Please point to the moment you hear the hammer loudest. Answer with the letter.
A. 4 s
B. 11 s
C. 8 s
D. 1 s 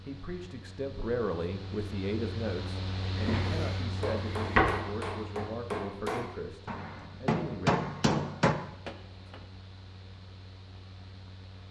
C.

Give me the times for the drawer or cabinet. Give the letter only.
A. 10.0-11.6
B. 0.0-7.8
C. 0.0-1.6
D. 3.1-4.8
D.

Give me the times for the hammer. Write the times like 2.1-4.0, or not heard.
4.0-9.4.